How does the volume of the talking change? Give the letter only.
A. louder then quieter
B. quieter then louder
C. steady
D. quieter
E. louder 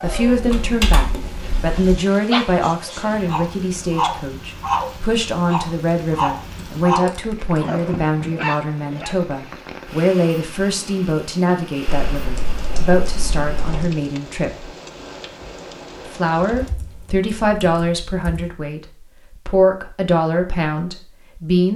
C.